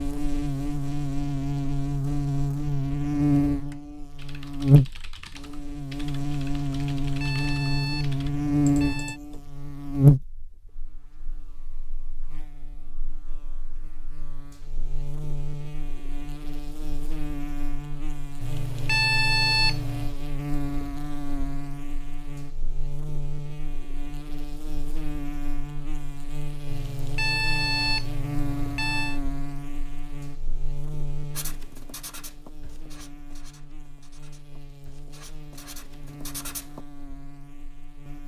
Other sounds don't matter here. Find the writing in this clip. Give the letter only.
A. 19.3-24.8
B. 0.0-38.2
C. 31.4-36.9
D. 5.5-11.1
C.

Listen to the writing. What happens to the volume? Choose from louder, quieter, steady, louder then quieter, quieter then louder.
quieter then louder.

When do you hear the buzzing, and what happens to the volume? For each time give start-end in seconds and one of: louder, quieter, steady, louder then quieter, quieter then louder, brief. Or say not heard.
0.0-38.2 quieter.